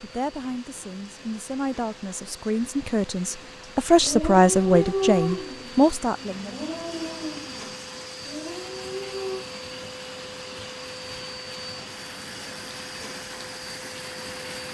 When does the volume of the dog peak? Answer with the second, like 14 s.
5 s.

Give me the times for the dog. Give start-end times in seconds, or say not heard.
4.0-9.4.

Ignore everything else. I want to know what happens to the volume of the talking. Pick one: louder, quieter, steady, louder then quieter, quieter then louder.
louder.